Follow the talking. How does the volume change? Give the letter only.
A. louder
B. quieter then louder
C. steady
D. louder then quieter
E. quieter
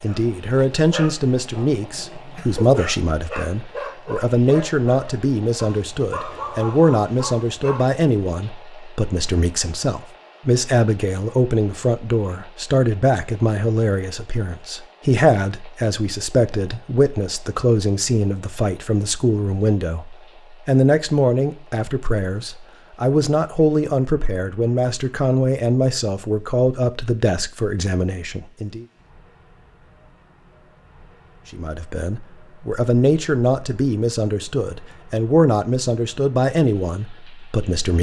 C.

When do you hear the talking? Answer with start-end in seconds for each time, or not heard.
0.0-28.9, 31.5-37.9.